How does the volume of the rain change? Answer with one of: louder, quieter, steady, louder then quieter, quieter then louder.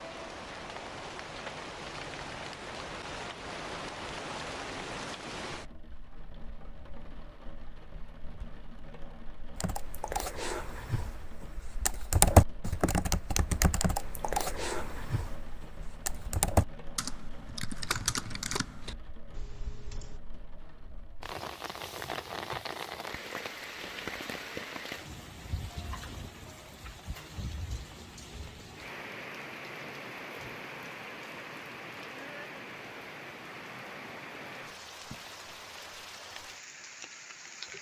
quieter then louder.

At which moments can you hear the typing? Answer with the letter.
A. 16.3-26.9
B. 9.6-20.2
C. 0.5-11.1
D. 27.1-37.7
B.